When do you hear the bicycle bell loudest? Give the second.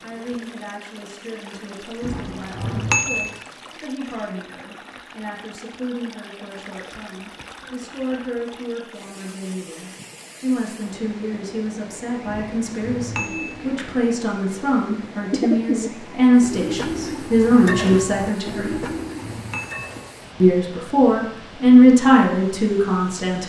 3 s.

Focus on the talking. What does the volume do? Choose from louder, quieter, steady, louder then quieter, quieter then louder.
louder.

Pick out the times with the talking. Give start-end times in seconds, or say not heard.
0.0-18.8, 20.4-23.4.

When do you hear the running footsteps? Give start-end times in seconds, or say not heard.
not heard.